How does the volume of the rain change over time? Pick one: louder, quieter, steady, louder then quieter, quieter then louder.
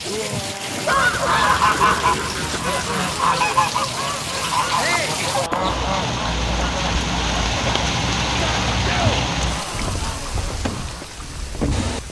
louder then quieter.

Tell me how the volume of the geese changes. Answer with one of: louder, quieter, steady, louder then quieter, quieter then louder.
quieter.